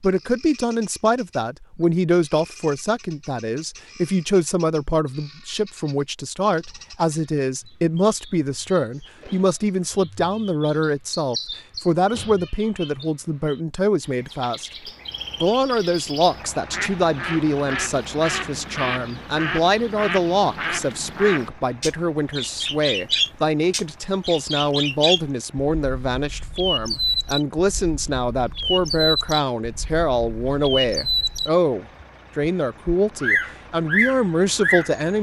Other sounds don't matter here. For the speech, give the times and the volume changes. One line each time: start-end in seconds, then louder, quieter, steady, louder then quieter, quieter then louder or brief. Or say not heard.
0.0-35.1 steady.